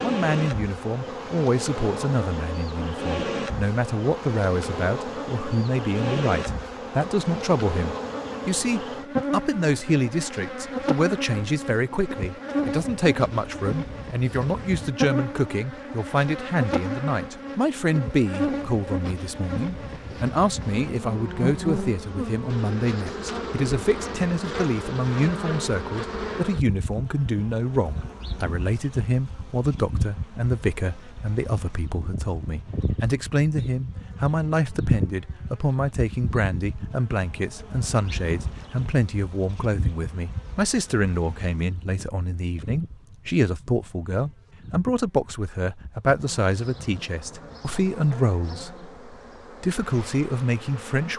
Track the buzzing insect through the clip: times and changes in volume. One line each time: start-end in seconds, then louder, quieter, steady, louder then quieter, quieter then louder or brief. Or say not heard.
0.0-51.1 quieter.